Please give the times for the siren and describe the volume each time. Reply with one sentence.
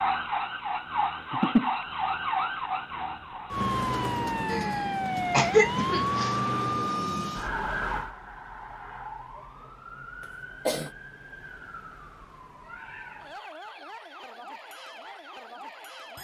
You can hear the siren from 0.0 to 16.1 s, getting quieter.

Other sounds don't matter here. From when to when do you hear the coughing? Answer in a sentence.
The coughing can be heard from 4.5 to 6.3 s and from 10.2 to 10.9 s.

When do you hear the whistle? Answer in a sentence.
You can't hear the whistle here.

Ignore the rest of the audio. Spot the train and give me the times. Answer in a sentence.
You can't hear the train here.